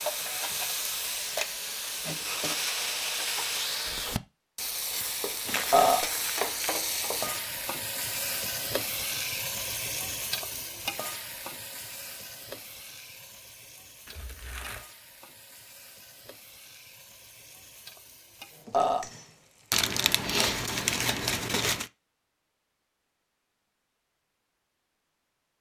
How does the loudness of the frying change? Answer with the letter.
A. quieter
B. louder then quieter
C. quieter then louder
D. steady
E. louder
A.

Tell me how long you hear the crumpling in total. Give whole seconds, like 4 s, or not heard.
5 s.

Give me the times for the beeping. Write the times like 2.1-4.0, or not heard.
not heard.